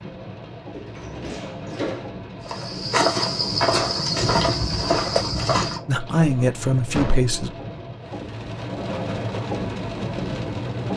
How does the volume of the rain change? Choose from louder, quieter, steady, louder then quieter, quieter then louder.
louder.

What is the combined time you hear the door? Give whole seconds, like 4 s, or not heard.
2 s.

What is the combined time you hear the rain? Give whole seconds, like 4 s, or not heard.
11 s.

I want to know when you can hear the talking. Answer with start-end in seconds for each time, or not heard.
5.8-7.5.